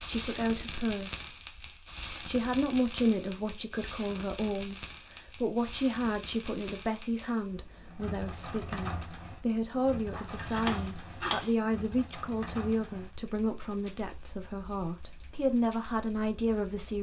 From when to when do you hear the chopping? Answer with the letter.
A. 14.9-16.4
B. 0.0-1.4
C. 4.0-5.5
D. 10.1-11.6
D.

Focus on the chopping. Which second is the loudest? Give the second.
11 s.